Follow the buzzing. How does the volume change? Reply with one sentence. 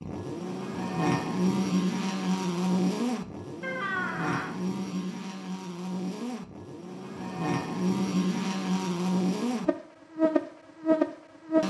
The loudness of the buzzing goes down, then up.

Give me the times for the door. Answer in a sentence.
The door can be heard from 3.6 to 4.5 s.